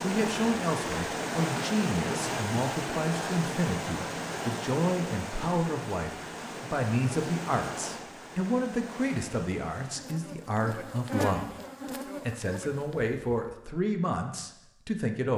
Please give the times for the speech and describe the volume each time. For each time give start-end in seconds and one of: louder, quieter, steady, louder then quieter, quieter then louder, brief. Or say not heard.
0.0-15.3 steady.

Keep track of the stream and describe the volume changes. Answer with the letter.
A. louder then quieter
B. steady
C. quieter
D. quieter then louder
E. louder
C.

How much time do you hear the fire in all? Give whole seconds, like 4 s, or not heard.
not heard.